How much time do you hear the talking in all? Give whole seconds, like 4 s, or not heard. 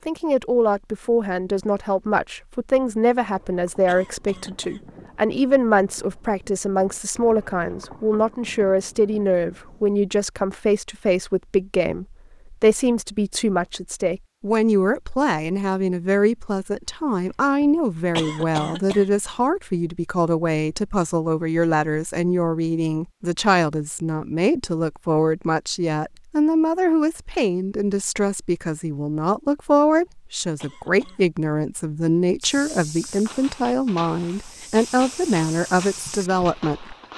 37 s.